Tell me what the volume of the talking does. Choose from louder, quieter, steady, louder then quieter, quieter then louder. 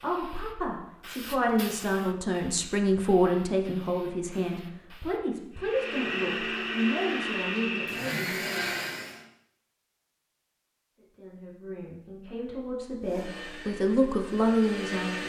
quieter then louder.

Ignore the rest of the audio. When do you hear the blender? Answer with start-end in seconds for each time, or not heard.
5.5-9.2, 13.0-15.2.